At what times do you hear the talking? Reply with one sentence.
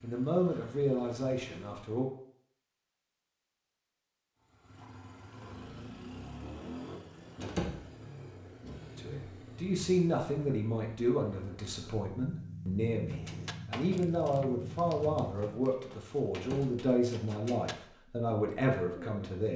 You can hear the talking from 0.0 to 2.0 s and from 8.9 to 19.5 s.